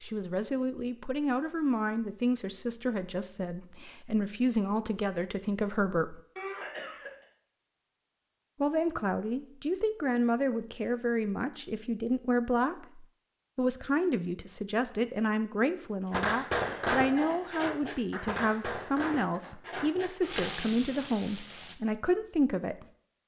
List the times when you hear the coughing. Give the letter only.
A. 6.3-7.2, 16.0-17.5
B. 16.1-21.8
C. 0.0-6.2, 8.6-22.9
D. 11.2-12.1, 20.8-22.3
A.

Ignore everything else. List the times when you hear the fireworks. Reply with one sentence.
You can hear the fireworks from 16.1 to 21.8 s.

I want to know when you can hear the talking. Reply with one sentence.
You can hear the talking from 0.0 to 6.2 s and from 8.6 to 22.9 s.